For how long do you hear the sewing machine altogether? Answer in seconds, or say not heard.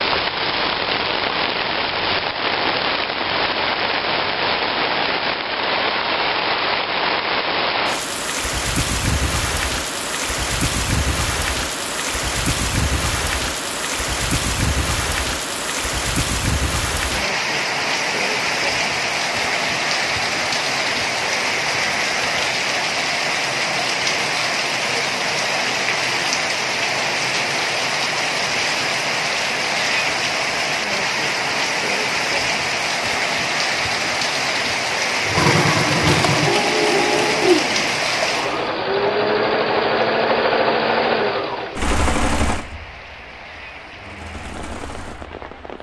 10 s.